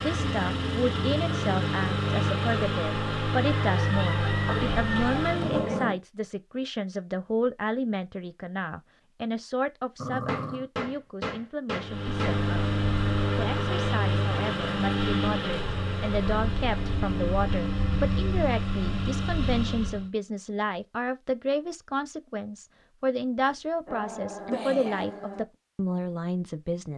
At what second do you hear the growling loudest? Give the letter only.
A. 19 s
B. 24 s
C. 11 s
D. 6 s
D.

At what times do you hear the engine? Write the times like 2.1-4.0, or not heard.
0.0-5.8, 11.8-20.1.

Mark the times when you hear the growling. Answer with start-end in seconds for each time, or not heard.
4.5-6.0, 9.9-10.7, 23.4-25.4.